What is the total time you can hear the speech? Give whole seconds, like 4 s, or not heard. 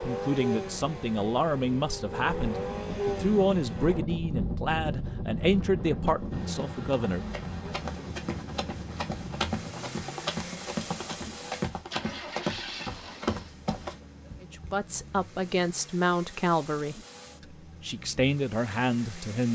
13 s.